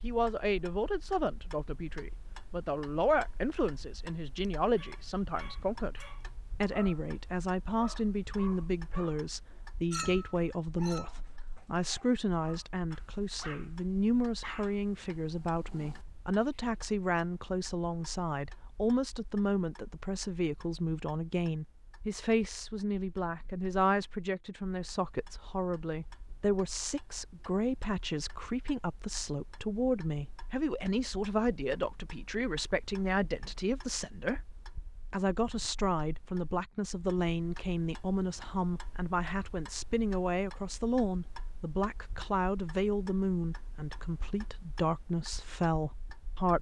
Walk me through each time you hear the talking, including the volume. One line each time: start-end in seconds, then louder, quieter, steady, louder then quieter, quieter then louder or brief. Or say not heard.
0.0-46.5 steady.